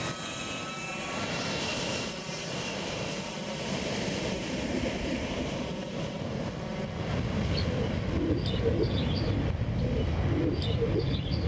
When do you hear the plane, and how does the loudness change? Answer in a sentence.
You can hear the plane from 0.0 to 11.4 s, at a steady volume.